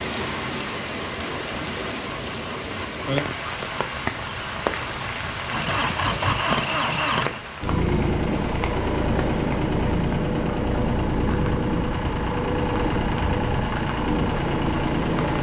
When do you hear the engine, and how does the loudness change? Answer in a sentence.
The engine can be heard from 0.2 to 15.3 s, getting louder.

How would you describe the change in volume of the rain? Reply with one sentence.
The volume of the rain goes down.